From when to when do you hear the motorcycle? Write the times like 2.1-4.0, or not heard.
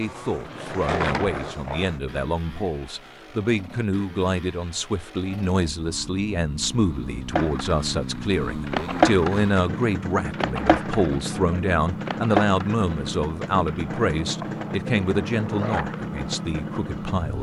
0.0-17.3.